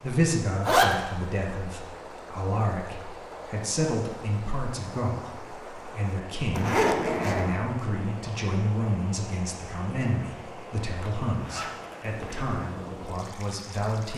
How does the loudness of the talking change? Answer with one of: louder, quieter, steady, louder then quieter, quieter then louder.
steady.